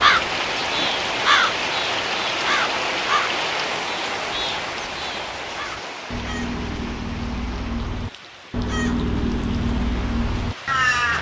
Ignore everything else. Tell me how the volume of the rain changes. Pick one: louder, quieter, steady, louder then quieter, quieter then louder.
quieter.